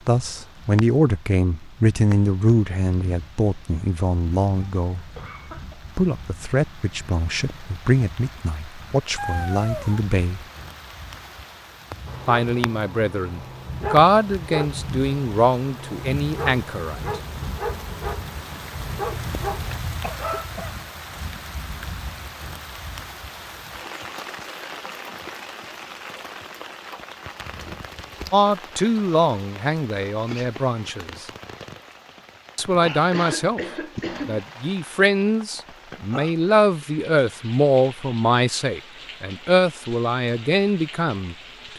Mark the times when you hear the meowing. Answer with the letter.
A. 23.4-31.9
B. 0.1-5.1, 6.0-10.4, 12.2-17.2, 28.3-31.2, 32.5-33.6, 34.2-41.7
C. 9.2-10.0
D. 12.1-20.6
C.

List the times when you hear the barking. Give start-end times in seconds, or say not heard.
12.1-20.6.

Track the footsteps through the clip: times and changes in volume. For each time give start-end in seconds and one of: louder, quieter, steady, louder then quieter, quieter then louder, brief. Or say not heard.
not heard.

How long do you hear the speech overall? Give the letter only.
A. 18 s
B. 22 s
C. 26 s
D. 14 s
C.